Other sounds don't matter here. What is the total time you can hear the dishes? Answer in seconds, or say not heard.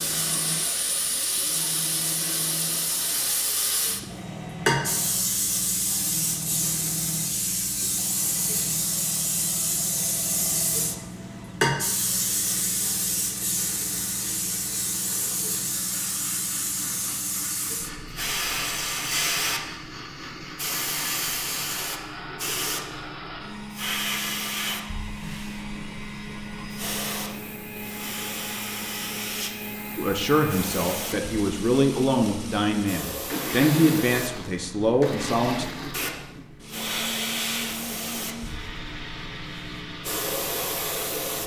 not heard.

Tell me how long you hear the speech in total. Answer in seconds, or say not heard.
6 s.